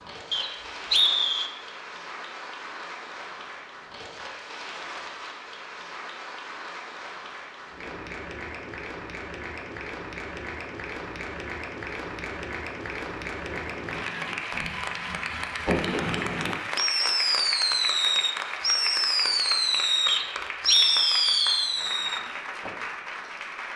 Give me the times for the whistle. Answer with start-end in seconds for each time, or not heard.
0.3-1.5, 20.1-21.7.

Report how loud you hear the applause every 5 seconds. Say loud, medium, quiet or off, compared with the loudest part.
medium, medium, loud, loud, loud.